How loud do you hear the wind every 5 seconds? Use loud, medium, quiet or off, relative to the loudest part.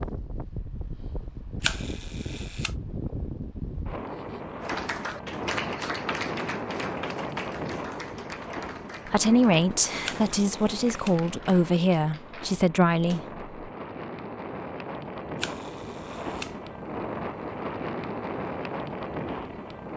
loud, loud, medium, loud.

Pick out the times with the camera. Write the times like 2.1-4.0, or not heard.
1.6-2.7, 10.0-11.2, 15.3-16.6.